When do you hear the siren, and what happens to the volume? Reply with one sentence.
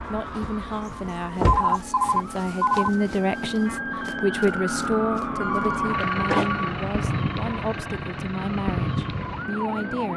The siren can be heard from 0.0 to 10.1 s, getting louder.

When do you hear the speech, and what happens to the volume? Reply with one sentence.
You can hear the speech from 0.0 to 10.1 s, getting louder then quieter.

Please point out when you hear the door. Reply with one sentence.
The door can be heard from 0.9 to 2.2 s and from 6.2 to 6.7 s.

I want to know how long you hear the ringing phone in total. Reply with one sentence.
The ringing phone can be heard for 3 seconds in total.